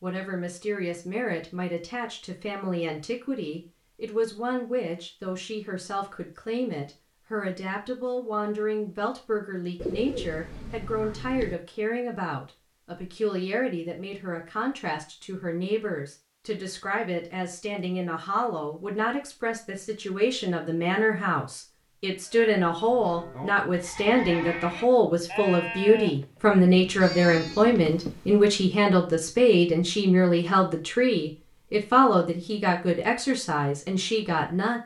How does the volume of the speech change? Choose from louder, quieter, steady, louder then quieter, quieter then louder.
louder.